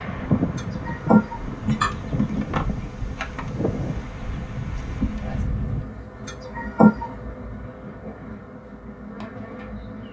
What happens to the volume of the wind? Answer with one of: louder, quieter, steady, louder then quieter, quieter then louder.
quieter.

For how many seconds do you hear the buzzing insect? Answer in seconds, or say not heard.
10 s.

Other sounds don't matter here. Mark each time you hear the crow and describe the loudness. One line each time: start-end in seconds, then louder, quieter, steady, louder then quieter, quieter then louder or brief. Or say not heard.
not heard.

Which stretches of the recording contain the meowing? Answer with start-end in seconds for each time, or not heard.
0.6-1.9, 6.2-7.1.